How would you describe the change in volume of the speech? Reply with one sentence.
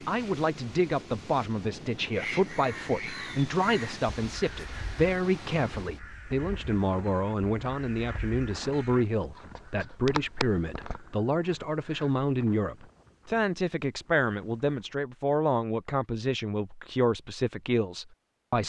The volume of the speech stays about the same.